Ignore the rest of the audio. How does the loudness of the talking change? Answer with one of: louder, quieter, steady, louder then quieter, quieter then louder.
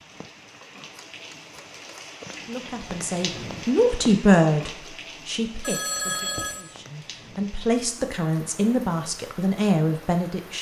quieter then louder.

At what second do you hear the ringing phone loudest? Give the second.
6 s.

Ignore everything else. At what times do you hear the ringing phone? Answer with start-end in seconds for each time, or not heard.
0.9-2.2, 5.6-6.7.